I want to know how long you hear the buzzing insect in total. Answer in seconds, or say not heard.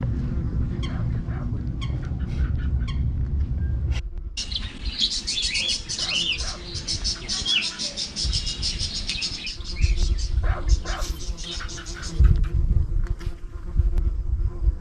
15 s.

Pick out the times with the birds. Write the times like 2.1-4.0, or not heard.
0.0-12.2.